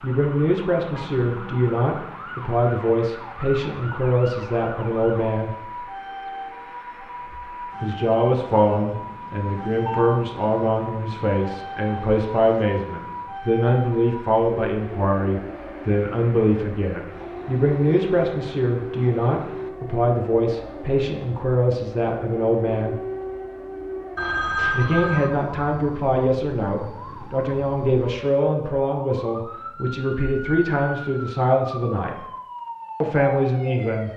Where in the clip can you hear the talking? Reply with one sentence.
You can hear the talking from 0.0 to 5.5 s, from 7.8 to 22.9 s, from 24.7 to 32.2 s and from 33.0 to 34.1 s.